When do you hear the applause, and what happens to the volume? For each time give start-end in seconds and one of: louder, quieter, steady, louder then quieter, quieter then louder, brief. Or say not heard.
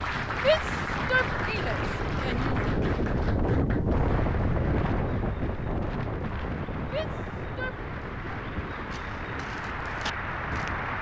0.0-10.9 quieter then louder.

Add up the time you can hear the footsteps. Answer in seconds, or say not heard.
2 s.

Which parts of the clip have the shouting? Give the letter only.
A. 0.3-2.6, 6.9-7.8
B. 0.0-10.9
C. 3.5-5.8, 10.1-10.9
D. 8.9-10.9
A.